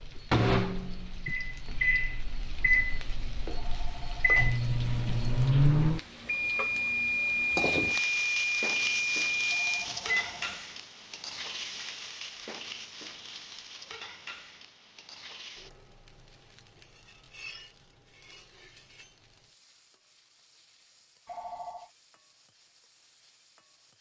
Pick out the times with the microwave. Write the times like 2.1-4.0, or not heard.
0.0-10.4.